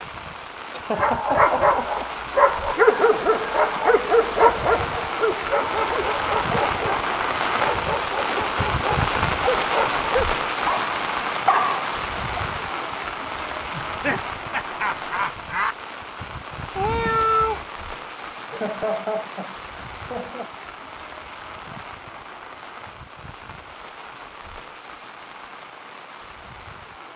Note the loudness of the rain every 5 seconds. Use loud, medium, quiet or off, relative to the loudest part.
medium, loud, loud, medium, quiet, quiet.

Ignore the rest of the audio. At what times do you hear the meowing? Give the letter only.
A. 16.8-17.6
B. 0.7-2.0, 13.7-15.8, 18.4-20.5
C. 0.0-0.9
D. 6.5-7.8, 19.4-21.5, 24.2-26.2
A.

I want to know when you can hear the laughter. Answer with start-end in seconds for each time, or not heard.
0.7-2.0, 13.7-15.8, 18.4-20.5.